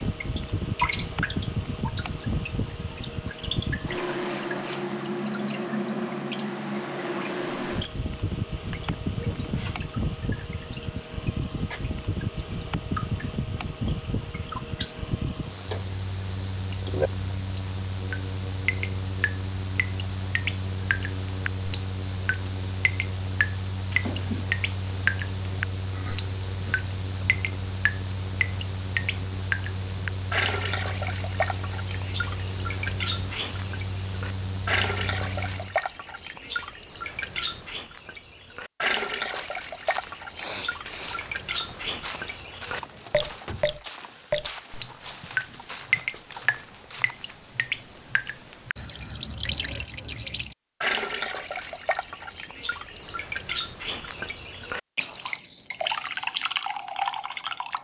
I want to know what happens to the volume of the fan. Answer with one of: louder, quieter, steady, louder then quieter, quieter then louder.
quieter.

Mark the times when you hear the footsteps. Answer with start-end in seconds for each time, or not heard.
39.2-47.4.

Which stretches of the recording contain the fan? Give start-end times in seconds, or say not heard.
0.0-35.8.